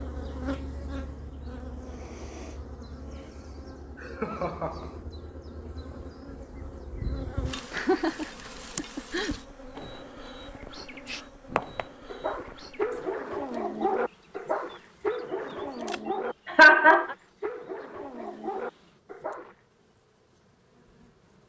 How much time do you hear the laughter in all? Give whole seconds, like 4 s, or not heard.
3 s.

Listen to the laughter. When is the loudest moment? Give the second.
17 s.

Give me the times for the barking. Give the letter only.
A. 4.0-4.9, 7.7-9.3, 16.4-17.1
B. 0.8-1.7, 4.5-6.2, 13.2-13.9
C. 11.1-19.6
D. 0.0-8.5
C.